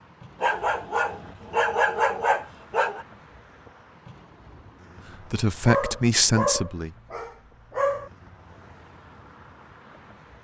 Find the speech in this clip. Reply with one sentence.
You can hear the speech from 5.3 to 6.9 s.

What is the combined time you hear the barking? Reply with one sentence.
The barking can be heard for 5 seconds in total.